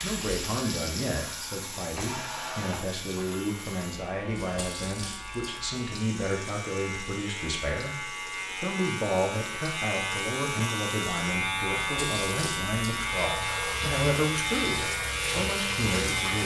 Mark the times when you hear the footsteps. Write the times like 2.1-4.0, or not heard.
not heard.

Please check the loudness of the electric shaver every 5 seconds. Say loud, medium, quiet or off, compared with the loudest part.
quiet, medium, loud, loud.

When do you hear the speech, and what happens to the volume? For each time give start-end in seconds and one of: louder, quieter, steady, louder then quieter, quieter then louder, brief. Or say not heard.
0.0-16.4 steady.